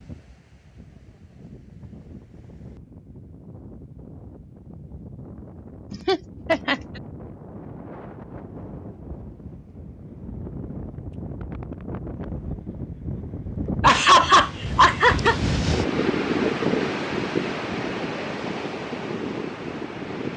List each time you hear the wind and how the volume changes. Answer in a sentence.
The wind can be heard from 0.0 to 20.3 s, getting louder.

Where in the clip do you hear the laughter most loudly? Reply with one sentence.
The loudest moment of the laughter is at 14 seconds.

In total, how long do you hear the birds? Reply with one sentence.
The birds can't be heard in this clip.